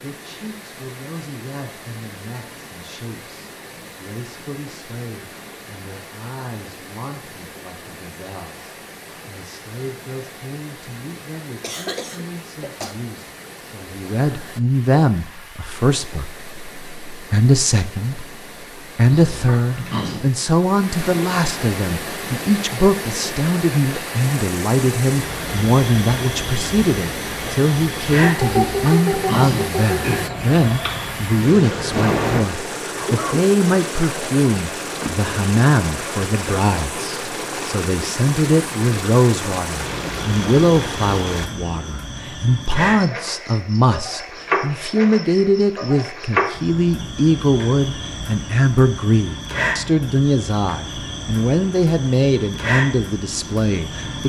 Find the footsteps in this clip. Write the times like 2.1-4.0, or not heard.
not heard.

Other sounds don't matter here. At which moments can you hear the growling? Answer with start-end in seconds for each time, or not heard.
19.1-20.2, 28.6-29.7.